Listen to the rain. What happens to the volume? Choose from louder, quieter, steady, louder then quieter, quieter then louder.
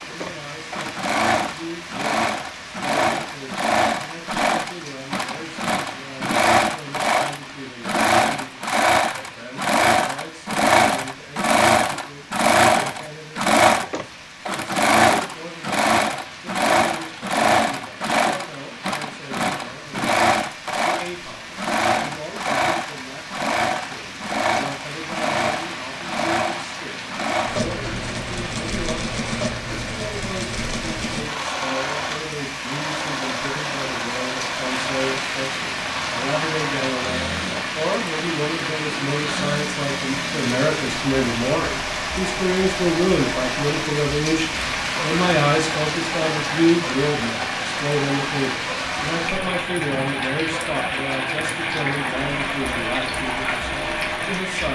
louder.